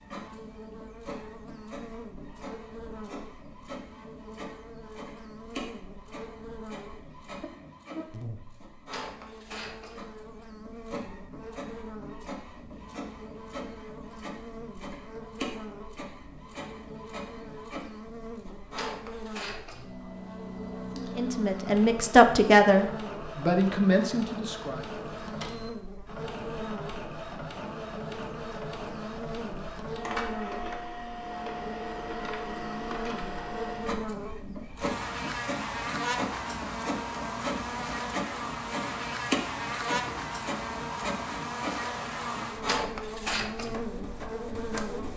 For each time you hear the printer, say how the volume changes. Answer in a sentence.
The printer can be heard from 0.0 to 45.1 s, getting louder.